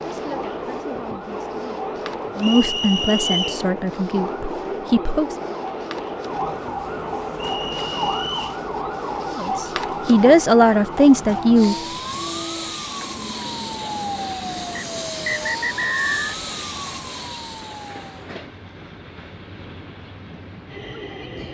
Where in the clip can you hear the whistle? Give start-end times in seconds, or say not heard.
2.4-3.6, 7.3-8.6, 14.8-16.4.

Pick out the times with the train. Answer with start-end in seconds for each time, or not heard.
0.0-21.4.